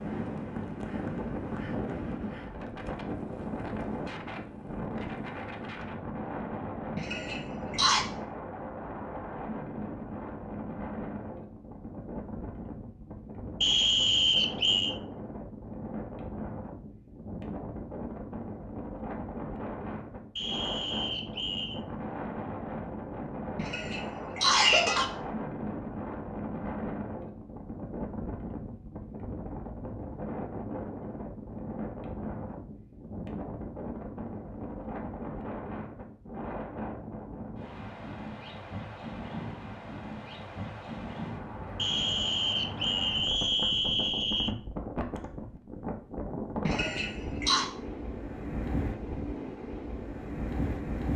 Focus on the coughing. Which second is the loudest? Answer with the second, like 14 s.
25 s.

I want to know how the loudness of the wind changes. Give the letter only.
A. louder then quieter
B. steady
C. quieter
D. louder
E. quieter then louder
B.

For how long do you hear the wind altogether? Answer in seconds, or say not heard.
51 s.